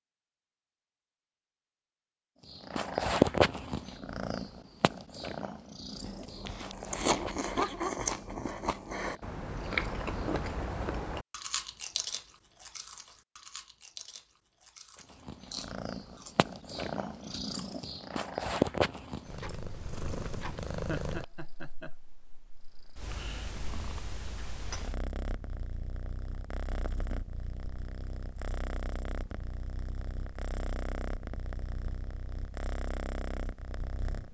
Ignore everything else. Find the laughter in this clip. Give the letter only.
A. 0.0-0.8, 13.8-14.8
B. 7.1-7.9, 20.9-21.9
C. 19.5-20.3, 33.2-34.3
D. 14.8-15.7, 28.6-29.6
B.